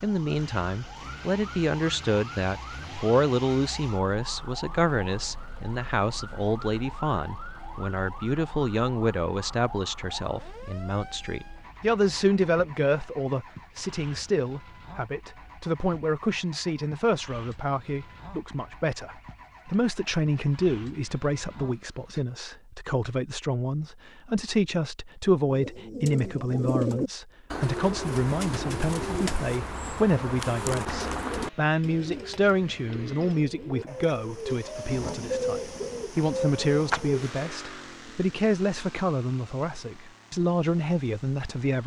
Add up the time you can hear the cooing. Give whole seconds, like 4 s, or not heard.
12 s.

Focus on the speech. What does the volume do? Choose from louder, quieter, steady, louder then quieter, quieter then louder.
steady.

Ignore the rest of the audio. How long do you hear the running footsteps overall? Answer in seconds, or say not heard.
not heard.